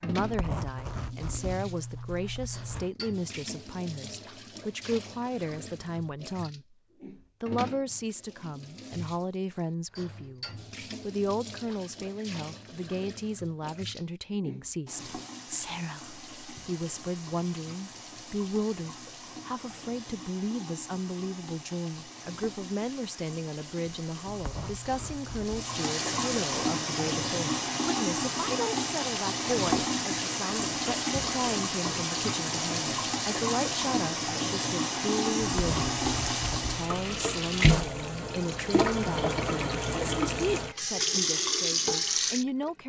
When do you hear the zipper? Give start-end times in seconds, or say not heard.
0.2-2.9, 24.2-25.8, 35.4-37.2.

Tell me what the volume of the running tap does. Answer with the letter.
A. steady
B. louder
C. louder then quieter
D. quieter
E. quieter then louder
B.